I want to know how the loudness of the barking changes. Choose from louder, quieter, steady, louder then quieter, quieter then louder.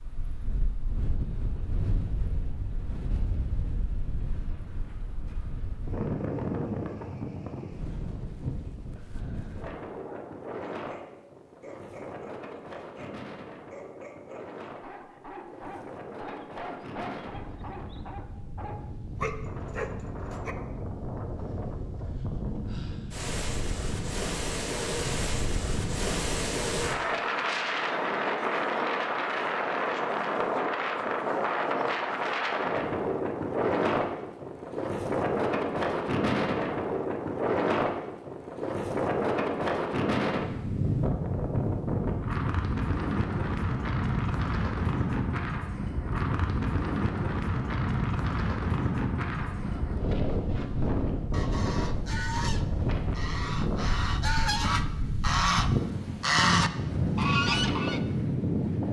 louder.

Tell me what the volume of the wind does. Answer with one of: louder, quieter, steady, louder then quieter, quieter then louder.
louder.